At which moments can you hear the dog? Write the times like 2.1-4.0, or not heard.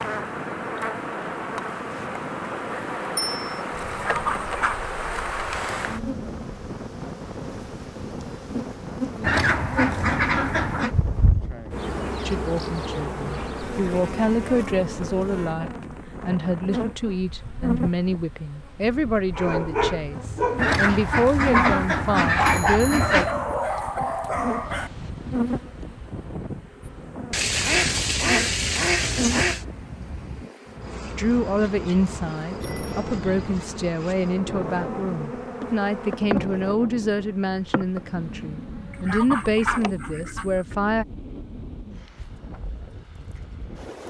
19.3-24.9.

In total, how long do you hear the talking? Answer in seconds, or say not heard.
21 s.